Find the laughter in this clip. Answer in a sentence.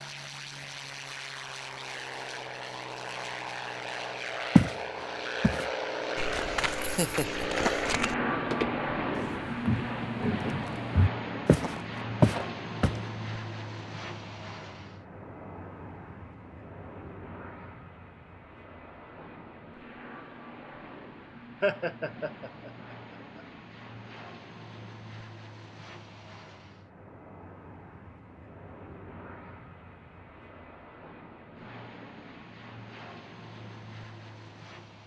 You can hear the laughter from 6.8 to 7.5 s and from 21.6 to 23.4 s.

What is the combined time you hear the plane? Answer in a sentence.
You can hear the plane for 35 seconds altogether.